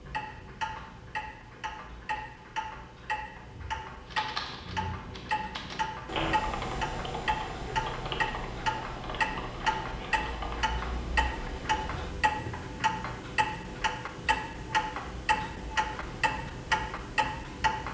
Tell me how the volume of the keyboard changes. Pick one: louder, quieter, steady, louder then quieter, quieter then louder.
louder then quieter.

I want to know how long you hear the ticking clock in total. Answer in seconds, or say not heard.
18 s.